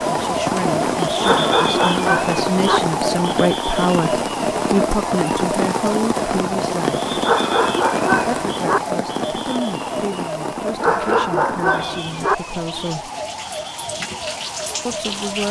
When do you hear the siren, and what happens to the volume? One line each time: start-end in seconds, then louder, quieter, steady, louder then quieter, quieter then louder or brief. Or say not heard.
0.0-15.4 quieter.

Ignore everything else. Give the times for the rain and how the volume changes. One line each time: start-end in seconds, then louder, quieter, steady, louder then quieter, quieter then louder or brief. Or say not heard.
0.0-15.4 quieter.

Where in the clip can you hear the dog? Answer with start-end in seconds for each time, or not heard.
1.2-2.8, 7.2-8.8, 10.8-12.3.